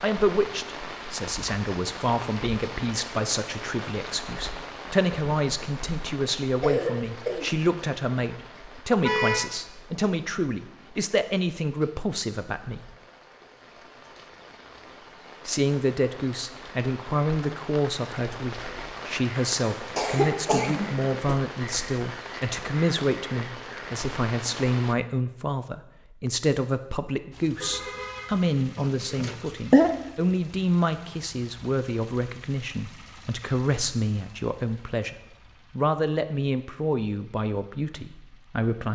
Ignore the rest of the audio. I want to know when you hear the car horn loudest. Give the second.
9 s.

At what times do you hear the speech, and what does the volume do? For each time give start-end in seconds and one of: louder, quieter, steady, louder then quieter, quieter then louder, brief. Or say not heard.
0.0-12.9 steady
15.4-38.9 steady.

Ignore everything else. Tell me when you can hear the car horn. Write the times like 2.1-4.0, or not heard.
9.0-9.5, 27.6-28.5.